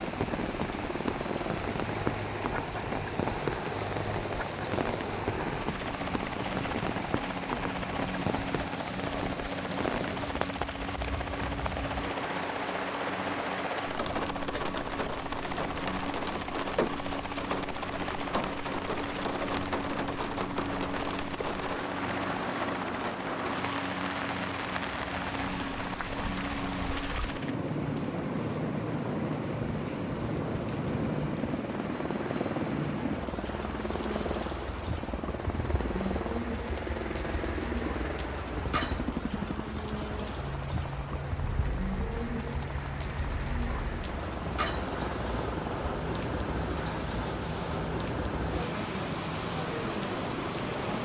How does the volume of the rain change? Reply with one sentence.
The volume of the rain stays about the same.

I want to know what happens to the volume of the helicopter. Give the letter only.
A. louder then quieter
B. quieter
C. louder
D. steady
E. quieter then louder
D.